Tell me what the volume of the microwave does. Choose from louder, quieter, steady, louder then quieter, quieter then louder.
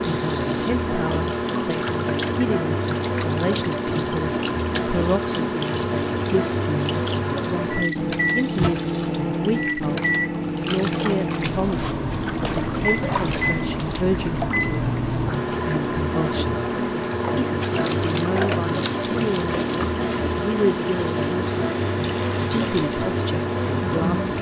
steady.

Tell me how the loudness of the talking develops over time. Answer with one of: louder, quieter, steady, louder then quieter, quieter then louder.
steady.